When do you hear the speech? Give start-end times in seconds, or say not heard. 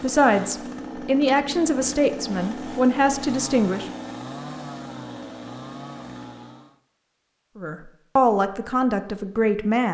0.0-3.9, 7.5-9.9.